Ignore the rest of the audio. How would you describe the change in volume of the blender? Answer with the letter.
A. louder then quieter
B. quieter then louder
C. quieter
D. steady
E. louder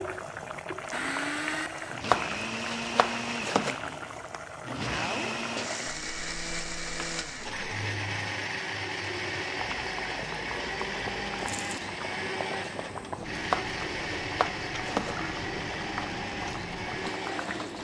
D.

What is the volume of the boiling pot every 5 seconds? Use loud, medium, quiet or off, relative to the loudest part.
loud, medium, loud, loud.